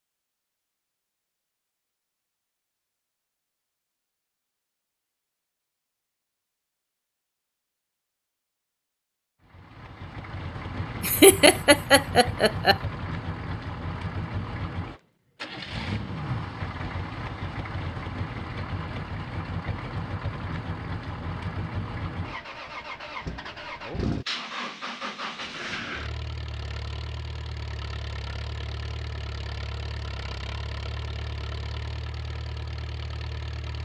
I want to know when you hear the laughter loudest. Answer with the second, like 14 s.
11 s.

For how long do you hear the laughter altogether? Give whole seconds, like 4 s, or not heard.
2 s.